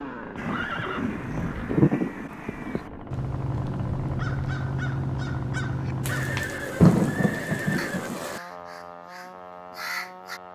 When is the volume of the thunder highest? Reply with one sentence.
The volume of the thunder peaks at 7 seconds.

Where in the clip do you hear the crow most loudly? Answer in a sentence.
The loudest moment of the crow is at 2 seconds.